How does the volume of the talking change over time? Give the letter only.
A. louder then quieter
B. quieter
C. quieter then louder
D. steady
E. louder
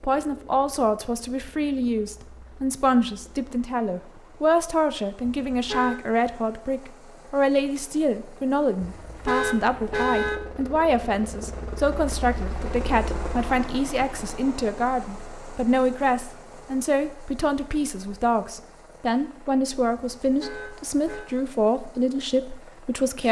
D.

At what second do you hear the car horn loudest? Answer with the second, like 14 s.
10 s.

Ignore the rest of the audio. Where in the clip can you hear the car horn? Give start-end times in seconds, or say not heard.
5.2-6.0, 8.8-10.4, 20.2-21.2.